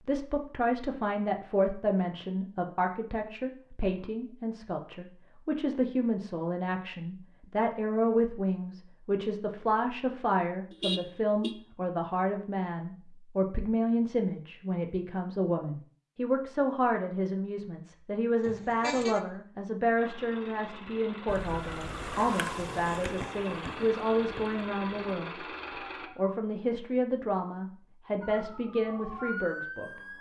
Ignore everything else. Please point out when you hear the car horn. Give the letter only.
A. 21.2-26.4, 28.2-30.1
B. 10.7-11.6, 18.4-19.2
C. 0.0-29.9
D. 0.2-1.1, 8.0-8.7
B.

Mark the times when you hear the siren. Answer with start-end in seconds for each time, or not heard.
21.2-26.4, 28.2-30.1.